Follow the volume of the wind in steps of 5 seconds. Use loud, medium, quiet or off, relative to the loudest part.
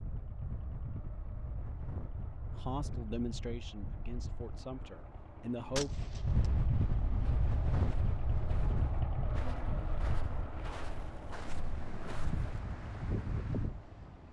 medium, loud, medium.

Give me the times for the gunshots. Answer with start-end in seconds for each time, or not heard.
5.8-6.5.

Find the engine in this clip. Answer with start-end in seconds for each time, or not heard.
0.0-14.2.